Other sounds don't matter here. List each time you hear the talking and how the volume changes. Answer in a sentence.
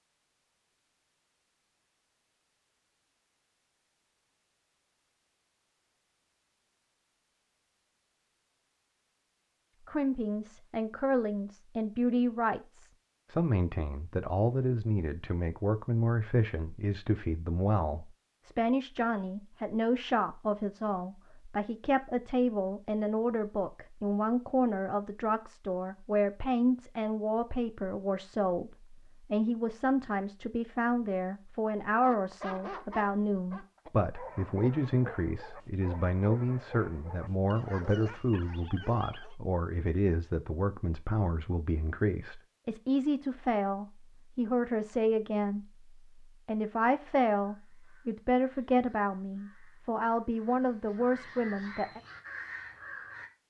You can hear the talking from 9.8 to 45.6 s, at a steady volume; and from 46.5 to 52.0 s, at a steady volume.